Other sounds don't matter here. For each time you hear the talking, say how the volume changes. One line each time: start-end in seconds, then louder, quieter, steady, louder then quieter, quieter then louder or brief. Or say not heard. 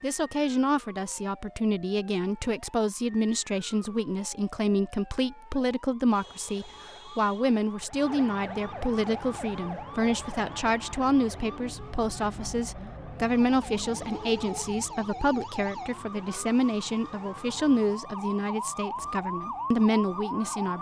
0.0-20.7 steady.